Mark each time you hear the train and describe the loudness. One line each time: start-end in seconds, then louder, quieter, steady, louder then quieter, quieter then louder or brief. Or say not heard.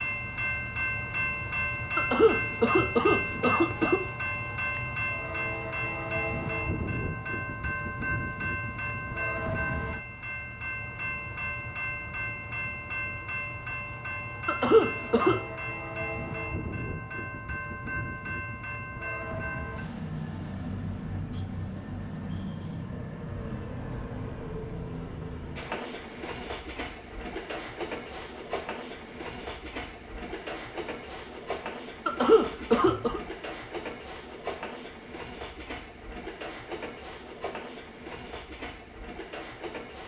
0.0-40.0 quieter.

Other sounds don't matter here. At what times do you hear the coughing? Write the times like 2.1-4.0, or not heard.
1.9-4.0, 14.4-15.4, 32.0-33.2.